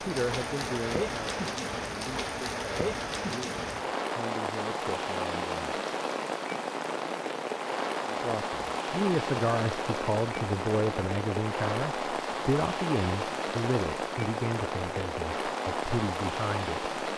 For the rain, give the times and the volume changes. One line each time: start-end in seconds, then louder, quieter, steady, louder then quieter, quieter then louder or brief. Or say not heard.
0.0-17.1 steady.